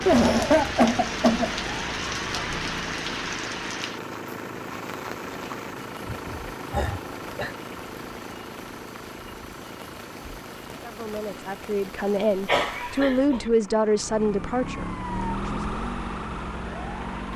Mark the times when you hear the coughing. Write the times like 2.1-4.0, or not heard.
0.1-1.6, 6.0-7.5, 12.4-13.4.